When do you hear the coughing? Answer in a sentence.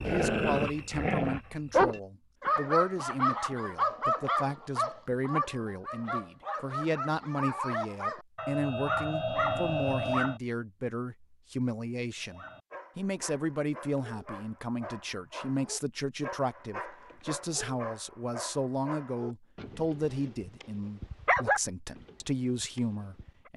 You can't hear the coughing here.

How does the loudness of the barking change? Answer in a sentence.
The volume of the barking goes down, then up.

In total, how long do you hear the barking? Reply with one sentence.
You can hear the barking for 22 seconds altogether.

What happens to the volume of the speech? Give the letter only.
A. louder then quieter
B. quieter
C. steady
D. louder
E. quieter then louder
C.